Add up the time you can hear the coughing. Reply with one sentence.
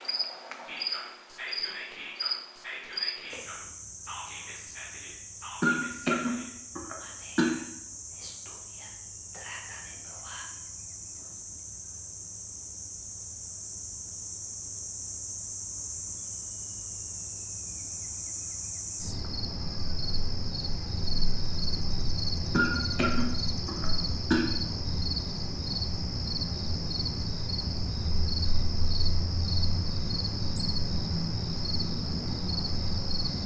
The coughing can be heard for 4 seconds in total.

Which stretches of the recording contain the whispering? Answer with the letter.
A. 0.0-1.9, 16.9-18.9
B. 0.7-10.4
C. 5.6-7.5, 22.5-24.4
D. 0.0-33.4
B.